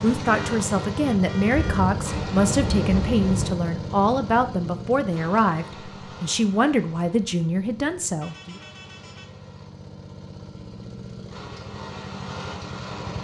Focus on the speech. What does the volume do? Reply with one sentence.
The volume of the speech stays about the same.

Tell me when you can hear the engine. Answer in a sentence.
The engine can be heard from 0.0 to 13.1 s.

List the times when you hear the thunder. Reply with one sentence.
The thunder can be heard from 1.6 to 3.5 s.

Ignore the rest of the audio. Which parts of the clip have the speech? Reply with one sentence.
You can hear the speech from 0.0 to 8.6 s.